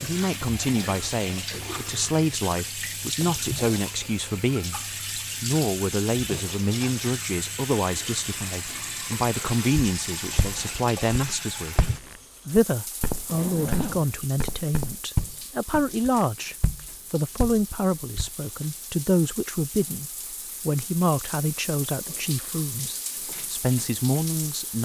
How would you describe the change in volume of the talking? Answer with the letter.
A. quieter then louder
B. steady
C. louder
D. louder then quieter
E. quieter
B.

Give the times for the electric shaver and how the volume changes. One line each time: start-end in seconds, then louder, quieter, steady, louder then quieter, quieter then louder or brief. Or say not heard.
not heard.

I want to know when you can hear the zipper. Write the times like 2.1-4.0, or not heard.
13.2-14.2.